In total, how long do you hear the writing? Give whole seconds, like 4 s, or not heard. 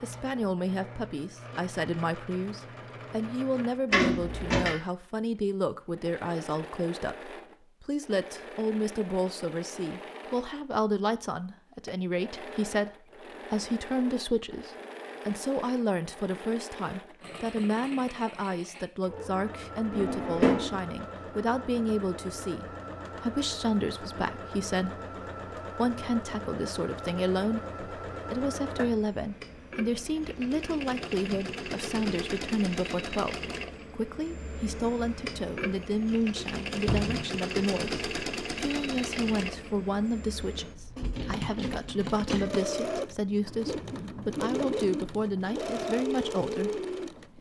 not heard.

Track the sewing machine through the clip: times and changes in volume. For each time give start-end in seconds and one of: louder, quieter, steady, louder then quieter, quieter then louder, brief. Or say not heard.
0.0-47.3 louder.